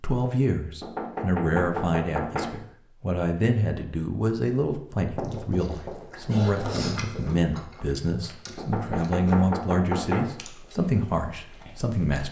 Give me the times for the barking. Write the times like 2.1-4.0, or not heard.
not heard.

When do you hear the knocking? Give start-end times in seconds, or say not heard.
0.8-2.5, 5.2-6.1, 8.6-10.3.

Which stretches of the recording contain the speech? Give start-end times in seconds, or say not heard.
0.0-12.2.